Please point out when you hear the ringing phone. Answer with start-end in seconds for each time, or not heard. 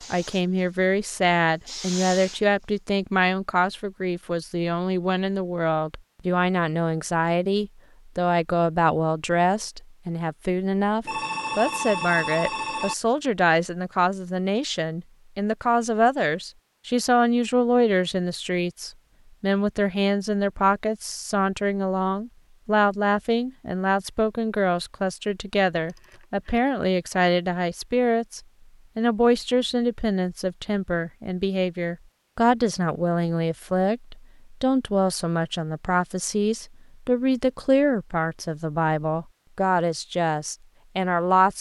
11.1-12.9, 25.8-26.6.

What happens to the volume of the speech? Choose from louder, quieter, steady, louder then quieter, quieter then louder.
steady.